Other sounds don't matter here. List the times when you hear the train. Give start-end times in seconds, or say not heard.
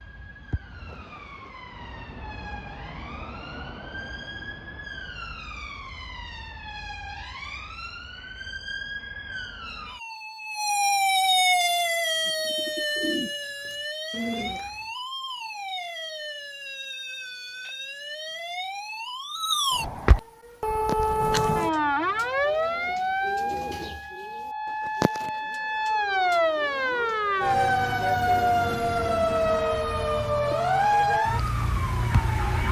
not heard.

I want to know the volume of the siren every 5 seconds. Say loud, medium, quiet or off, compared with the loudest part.
quiet, quiet, loud, medium, loud, loud, loud.